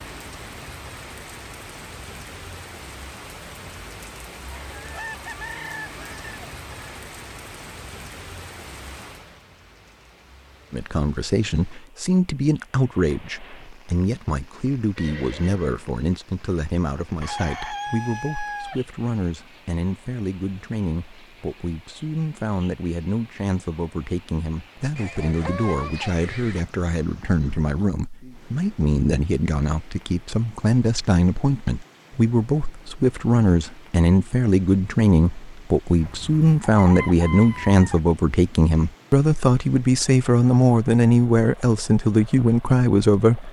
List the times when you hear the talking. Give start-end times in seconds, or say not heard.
10.7-43.4.